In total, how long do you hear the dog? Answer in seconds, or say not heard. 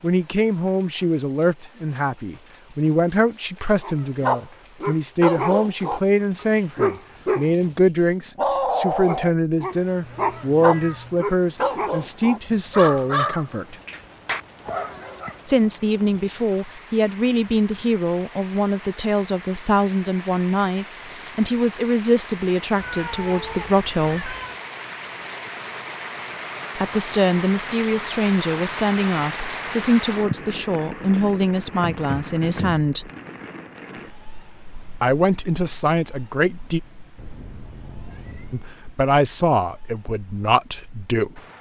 11 s.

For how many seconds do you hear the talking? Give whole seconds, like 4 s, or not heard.
34 s.